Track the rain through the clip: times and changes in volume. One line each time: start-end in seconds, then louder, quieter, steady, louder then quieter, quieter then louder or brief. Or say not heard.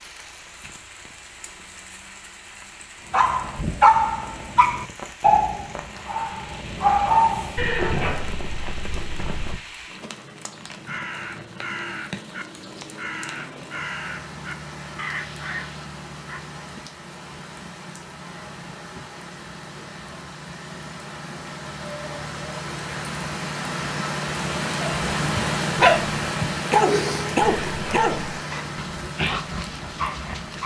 0.0-30.6 louder.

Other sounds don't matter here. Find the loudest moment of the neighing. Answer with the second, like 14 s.
8 s.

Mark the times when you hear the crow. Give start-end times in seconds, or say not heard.
10.7-16.4.